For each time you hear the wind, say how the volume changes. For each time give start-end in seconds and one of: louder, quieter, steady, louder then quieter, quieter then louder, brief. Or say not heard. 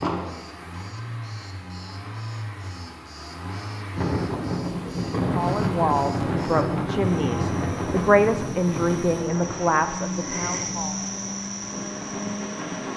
4.0-12.9 quieter.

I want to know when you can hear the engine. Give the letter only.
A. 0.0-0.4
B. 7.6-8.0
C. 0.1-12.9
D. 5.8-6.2
C.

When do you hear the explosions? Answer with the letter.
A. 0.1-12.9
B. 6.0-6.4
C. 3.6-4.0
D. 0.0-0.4
D.